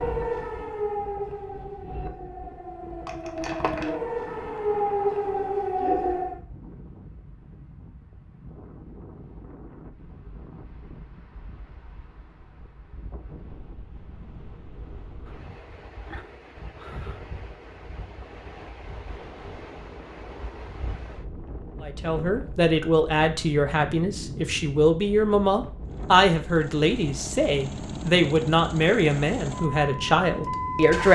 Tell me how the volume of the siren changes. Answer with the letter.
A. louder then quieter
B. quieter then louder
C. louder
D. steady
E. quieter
B.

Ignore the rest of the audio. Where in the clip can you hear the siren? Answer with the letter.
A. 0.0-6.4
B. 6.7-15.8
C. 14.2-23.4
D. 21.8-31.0
A.